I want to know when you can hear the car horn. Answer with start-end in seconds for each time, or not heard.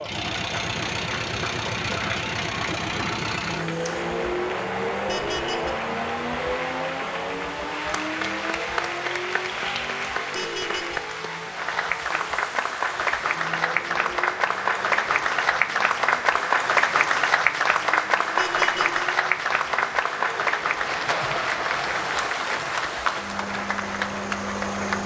5.0-5.7, 10.3-11.0, 18.4-19.0.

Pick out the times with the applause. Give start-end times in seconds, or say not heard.
0.1-25.0.